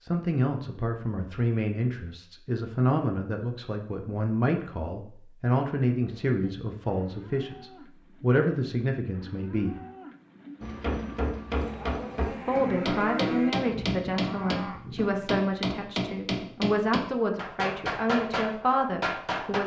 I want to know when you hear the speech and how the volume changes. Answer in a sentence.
You can hear the speech from 0.0 to 9.8 s, at a steady volume; and from 12.2 to 19.6 s, at a steady volume.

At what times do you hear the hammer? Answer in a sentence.
The hammer can be heard from 10.6 to 19.6 s.